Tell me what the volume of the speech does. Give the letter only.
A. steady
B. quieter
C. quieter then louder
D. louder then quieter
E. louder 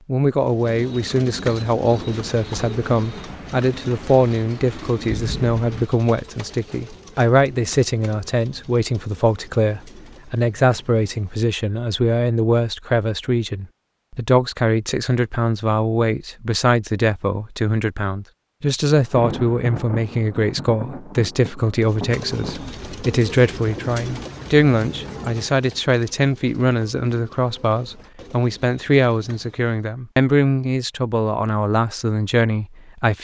A.